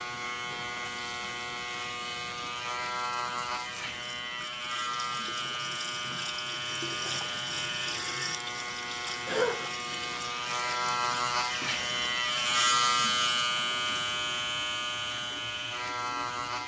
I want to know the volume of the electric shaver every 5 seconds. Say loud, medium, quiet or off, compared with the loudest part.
medium, medium, loud, medium.